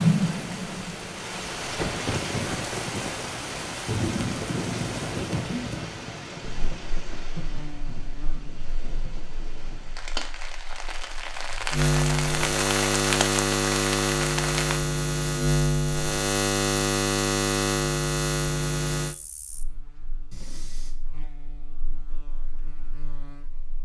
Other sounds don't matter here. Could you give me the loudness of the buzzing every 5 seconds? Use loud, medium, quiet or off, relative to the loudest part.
off, quiet, loud, loud, quiet.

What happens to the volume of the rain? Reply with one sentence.
The volume of the rain goes down, then up.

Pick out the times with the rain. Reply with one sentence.
You can hear the rain from 0.0 to 14.8 s.